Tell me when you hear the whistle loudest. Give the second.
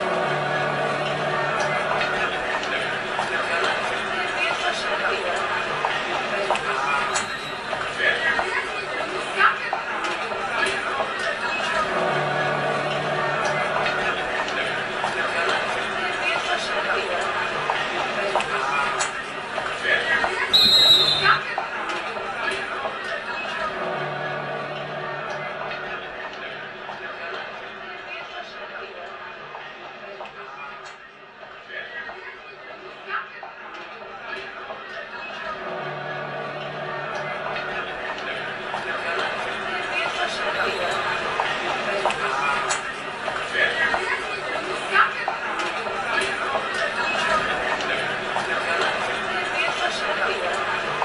21 s.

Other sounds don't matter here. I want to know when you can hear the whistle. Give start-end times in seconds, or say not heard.
7.0-8.0, 20.5-21.4, 40.5-41.2.